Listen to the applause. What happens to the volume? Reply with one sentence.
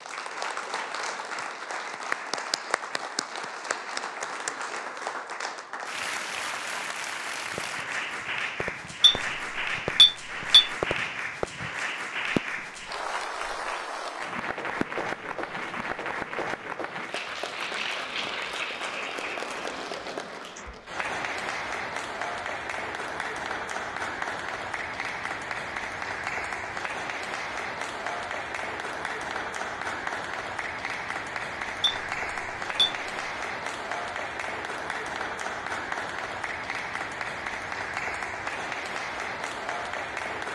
The volume of the applause stays about the same.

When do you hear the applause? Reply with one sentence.
You can hear the applause from 0.0 to 40.5 s.